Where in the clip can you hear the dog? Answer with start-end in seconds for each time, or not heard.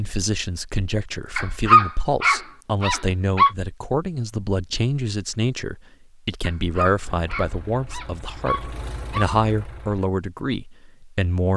1.4-3.5, 6.4-9.2.